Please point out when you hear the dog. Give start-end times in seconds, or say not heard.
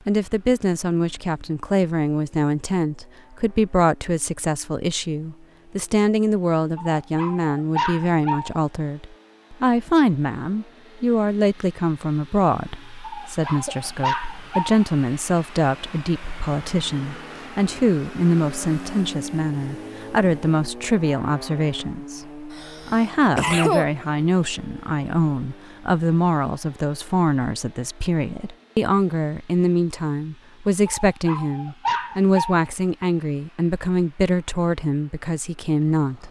6.8-8.6, 13.0-14.8, 31.1-32.7.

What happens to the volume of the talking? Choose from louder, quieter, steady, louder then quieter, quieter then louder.
steady.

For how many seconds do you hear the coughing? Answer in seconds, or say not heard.
2 s.